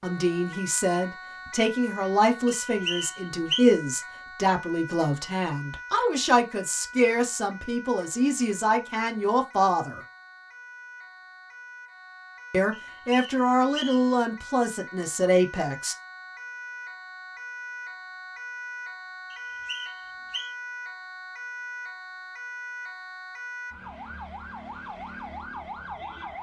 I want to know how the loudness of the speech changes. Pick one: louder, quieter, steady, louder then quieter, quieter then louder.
steady.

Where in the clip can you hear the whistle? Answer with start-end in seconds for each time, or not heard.
2.5-3.6, 12.7-14.2, 19.3-20.6.